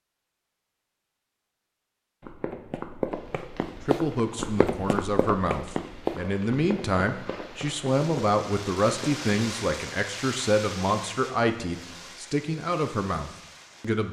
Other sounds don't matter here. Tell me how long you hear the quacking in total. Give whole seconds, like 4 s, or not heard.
not heard.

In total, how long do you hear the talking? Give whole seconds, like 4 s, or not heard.
10 s.